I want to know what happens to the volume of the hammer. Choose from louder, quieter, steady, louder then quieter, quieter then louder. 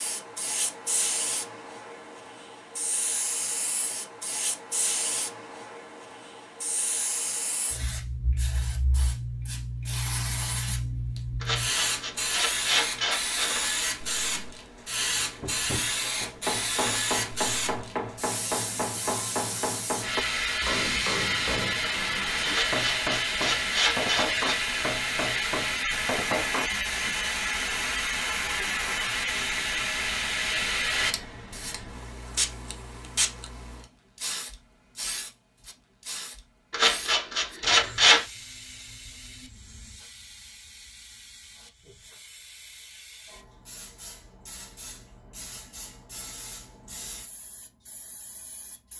steady.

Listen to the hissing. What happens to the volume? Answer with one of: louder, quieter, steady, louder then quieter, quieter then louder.
louder then quieter.